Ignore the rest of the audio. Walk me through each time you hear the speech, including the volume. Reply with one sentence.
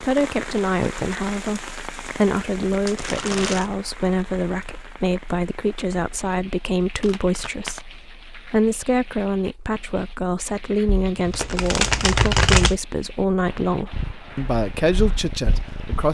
You can hear the speech from 0.0 to 16.0 s, at a steady volume.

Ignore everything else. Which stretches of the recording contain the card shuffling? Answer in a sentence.
The card shuffling can be heard from 2.9 to 3.7 s, from 7.0 to 7.8 s and from 10.8 to 12.8 s.